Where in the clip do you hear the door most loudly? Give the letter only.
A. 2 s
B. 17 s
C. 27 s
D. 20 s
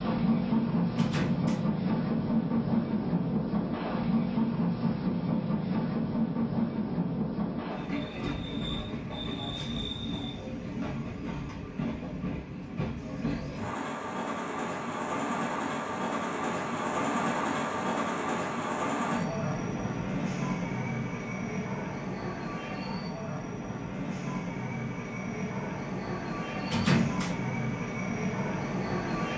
C.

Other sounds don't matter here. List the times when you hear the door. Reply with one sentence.
The door can be heard from 0.9 to 1.6 s and from 26.6 to 27.4 s.